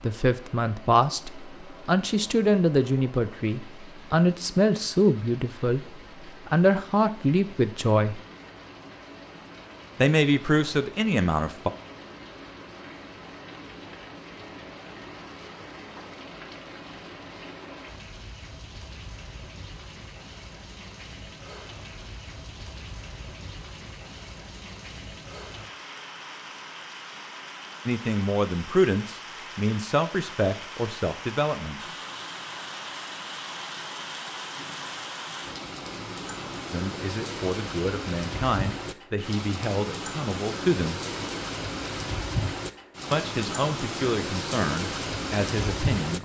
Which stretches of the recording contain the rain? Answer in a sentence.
You can hear the rain from 0.0 to 46.2 s.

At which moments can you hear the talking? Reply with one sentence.
You can hear the talking from 0.0 to 5.8 s, from 6.5 to 8.2 s, from 9.9 to 11.7 s, from 27.9 to 31.8 s, from 36.7 to 41.0 s and from 43.1 to 46.2 s.